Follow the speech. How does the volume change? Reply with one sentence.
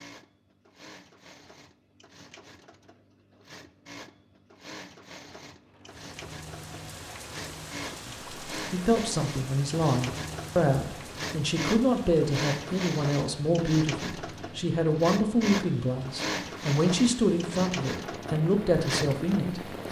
The loudness of the speech stays about the same.